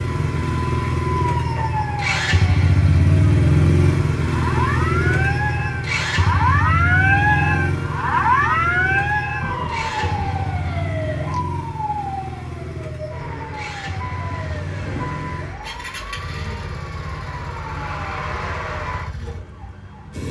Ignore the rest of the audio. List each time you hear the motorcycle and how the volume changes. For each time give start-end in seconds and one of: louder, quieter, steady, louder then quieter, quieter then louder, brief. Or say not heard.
0.0-20.2 quieter.